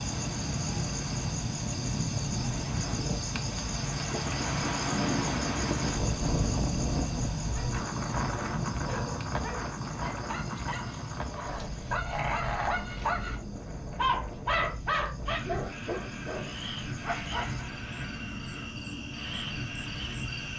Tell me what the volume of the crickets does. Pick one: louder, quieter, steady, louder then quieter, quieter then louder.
quieter then louder.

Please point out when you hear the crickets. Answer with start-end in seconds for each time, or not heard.
0.0-20.5.